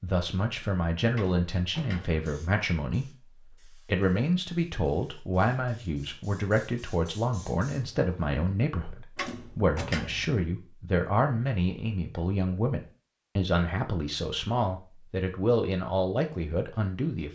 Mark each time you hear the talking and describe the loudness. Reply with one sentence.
The talking can be heard from 0.0 to 17.3 s, at a steady volume.